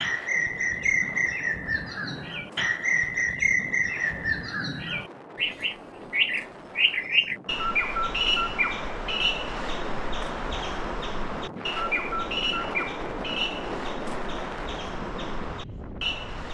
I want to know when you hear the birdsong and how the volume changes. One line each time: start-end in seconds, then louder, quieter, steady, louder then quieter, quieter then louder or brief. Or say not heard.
0.0-16.4 quieter.